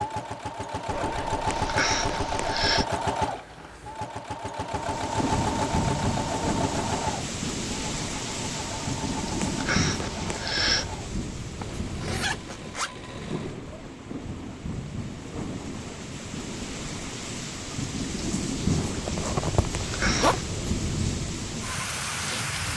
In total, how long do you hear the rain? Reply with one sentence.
The rain can be heard for 18 seconds in total.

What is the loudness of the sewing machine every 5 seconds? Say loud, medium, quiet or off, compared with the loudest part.
loud, loud, quiet, off, off.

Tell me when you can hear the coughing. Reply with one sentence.
The coughing can be heard from 1.4 to 2.9 s, from 9.4 to 10.9 s and from 19.8 to 20.5 s.